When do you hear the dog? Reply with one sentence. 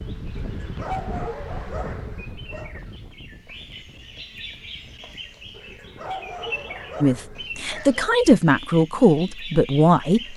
You can hear the dog from 0.3 to 2.8 s and from 5.5 to 8.1 s.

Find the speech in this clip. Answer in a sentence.
You can hear the speech from 7.0 to 10.3 s.